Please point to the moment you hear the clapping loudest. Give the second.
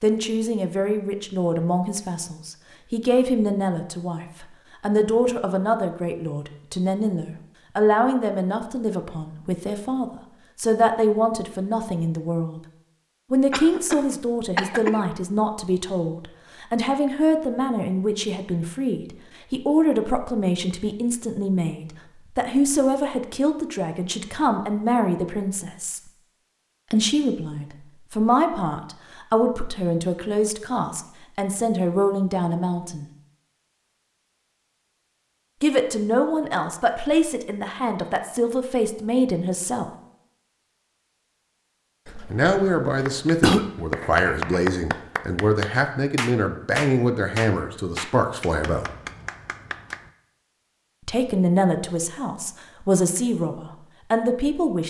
45 s.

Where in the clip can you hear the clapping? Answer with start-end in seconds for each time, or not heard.
43.0-50.1.